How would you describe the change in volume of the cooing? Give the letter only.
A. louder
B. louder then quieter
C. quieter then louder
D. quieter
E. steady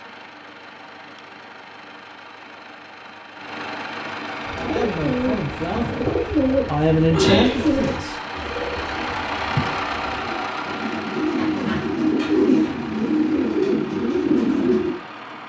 C.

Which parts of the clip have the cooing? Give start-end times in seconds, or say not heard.
4.5-14.9.